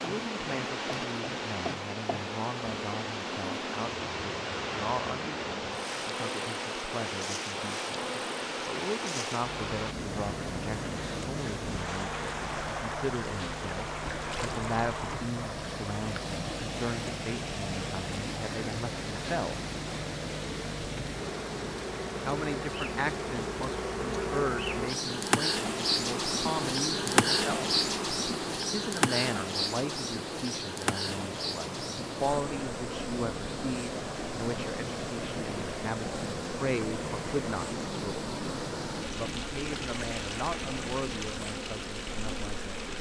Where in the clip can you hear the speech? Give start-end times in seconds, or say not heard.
0.0-19.6, 22.2-27.8, 28.7-38.3, 39.1-42.9.